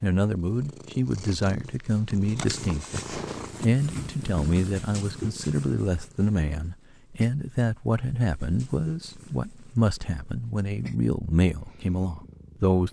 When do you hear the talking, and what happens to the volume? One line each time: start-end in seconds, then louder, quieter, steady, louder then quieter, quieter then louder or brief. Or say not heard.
0.0-12.8 steady.